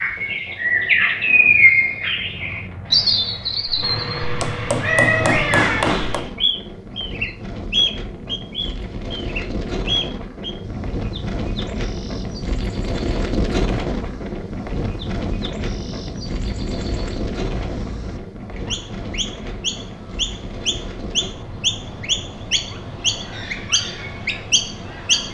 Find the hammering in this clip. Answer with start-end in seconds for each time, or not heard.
4.3-6.2.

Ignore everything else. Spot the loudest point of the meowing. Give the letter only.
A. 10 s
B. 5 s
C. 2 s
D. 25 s
B.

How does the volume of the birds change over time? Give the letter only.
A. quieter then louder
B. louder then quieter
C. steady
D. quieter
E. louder
A.